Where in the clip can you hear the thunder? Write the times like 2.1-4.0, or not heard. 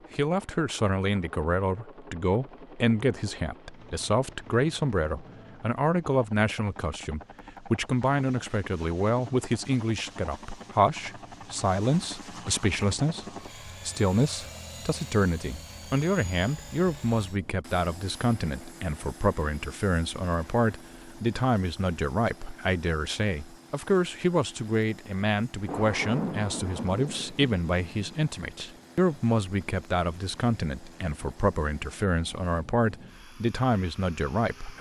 25.6-28.2.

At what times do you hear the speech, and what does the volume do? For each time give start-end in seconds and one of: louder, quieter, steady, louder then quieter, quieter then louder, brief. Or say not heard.
0.1-34.7 steady.